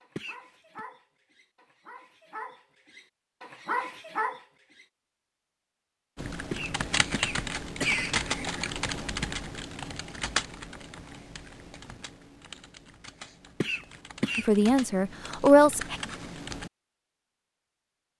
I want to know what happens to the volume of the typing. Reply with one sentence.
The volume of the typing goes down, then up.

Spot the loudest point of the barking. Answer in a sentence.
The loudest moment of the barking is at 4 seconds.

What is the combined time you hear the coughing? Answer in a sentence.
You can hear the coughing for 3 seconds altogether.